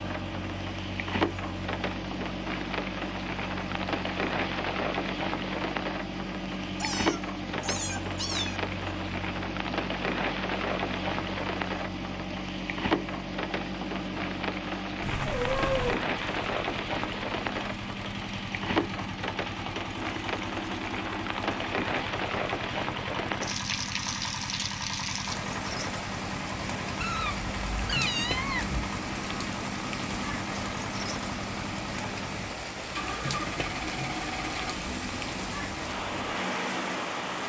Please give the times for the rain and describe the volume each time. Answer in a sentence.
You can hear the rain from 0.0 to 37.4 s, at a steady volume.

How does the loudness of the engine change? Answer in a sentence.
The loudness of the engine stays about the same.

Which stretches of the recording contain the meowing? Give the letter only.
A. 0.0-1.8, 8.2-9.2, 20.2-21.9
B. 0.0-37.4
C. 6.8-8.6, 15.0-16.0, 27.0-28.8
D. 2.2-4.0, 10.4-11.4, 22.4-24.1
C.